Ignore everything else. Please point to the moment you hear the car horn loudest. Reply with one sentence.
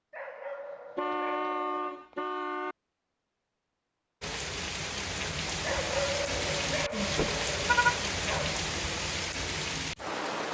The loudest moment of the car horn is at 8 seconds.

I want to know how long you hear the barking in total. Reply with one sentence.
You can hear the barking for 5 seconds altogether.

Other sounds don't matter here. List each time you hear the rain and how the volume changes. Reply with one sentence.
You can hear the rain from 4.2 to 10.4 s, at a steady volume.